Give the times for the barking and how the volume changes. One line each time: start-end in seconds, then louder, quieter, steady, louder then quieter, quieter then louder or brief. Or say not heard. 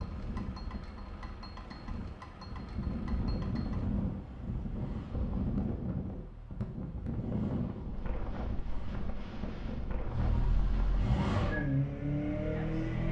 not heard.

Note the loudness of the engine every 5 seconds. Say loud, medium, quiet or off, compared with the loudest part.
quiet, quiet, loud.